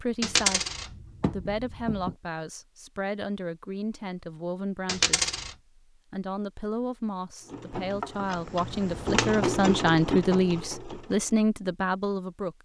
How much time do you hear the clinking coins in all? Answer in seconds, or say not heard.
3 s.